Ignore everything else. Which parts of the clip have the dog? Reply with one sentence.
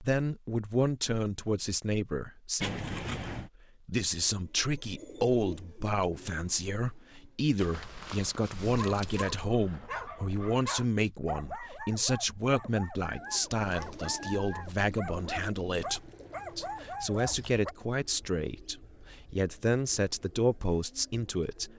You can hear the dog from 8.6 to 17.8 s.